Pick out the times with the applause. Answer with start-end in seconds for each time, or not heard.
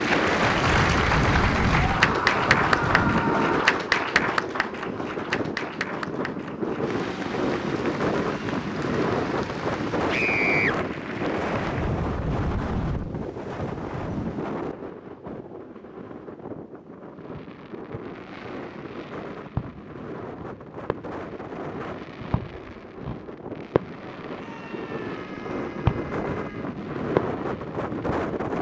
0.0-11.9.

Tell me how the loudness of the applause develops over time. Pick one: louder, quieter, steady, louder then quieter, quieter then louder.
quieter.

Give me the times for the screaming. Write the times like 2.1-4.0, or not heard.
1.8-3.8, 10.1-10.8, 24.3-26.8.